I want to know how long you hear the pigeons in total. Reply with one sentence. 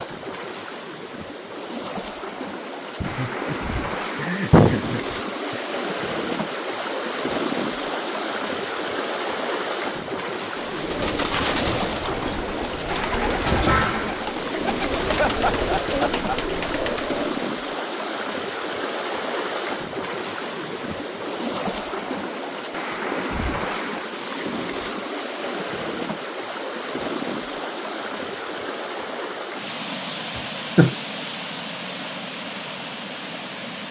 The pigeons can be heard for 7 seconds in total.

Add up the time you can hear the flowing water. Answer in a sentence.
The flowing water can be heard for 34 seconds in total.